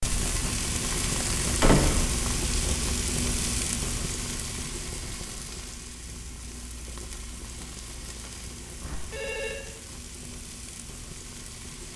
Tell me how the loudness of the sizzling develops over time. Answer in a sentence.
The loudness of the sizzling goes down.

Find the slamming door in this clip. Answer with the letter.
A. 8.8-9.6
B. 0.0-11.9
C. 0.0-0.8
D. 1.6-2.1
D.